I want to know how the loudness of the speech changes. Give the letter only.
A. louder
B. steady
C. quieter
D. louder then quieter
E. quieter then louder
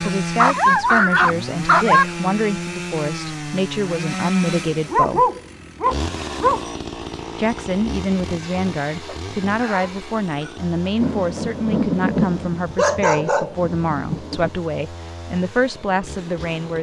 B.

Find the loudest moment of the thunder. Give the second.
12 s.